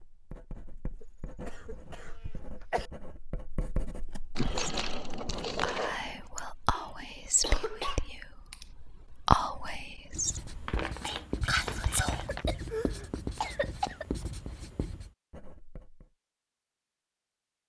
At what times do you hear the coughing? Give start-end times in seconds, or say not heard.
1.0-2.9, 6.7-8.7, 12.1-14.1.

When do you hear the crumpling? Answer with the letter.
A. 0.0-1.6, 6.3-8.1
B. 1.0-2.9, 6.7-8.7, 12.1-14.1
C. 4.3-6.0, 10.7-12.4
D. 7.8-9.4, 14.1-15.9
C.